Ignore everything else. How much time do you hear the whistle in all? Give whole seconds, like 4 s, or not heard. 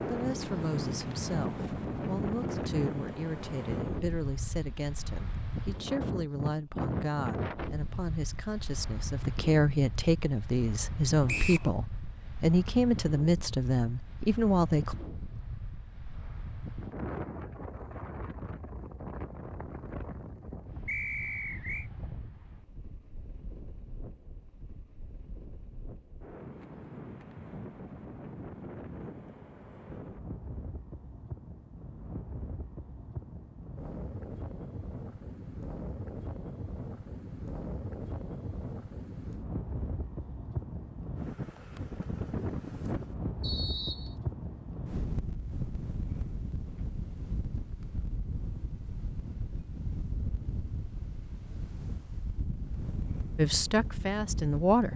2 s.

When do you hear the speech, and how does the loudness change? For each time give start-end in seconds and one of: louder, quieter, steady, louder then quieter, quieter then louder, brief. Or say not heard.
0.1-14.9 louder
53.4-54.9 brief.